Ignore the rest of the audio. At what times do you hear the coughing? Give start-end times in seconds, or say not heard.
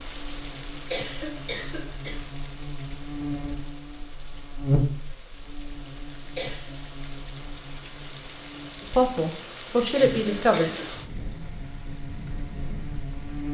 0.9-2.4, 6.3-6.8, 9.9-10.9.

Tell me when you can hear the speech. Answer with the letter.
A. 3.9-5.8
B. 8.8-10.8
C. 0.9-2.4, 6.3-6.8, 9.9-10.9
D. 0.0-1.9
B.